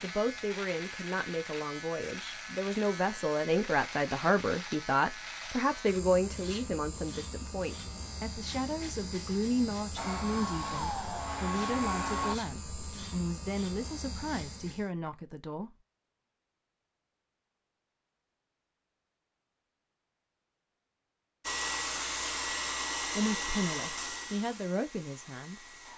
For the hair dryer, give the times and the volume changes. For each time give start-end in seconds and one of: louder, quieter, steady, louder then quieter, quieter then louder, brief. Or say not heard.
9.9-12.3 brief
21.4-25.9 quieter.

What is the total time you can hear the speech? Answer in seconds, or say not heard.
18 s.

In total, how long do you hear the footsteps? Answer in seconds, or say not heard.
not heard.